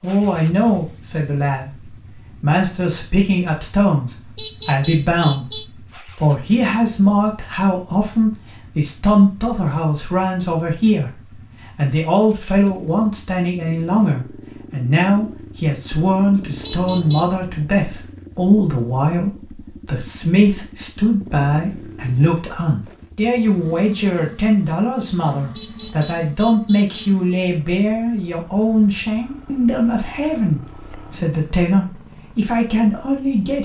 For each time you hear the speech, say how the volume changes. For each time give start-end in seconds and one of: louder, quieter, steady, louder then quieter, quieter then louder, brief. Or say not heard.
0.0-33.6 steady.